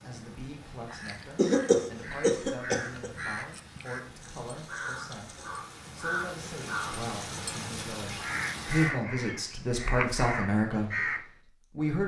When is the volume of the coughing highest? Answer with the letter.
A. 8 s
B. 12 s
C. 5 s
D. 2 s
D.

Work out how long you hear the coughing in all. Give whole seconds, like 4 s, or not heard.
2 s.